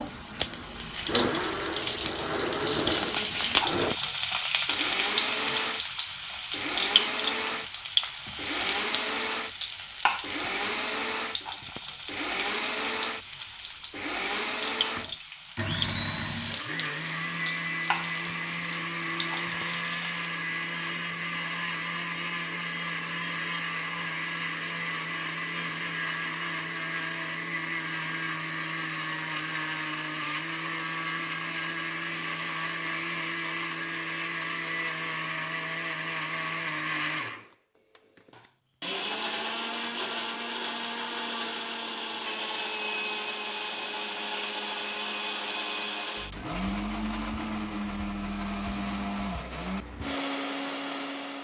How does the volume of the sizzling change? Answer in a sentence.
The volume of the sizzling goes down.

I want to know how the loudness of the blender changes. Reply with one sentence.
The volume of the blender stays about the same.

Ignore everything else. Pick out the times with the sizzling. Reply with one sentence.
The sizzling can be heard from 0.0 to 20.3 s.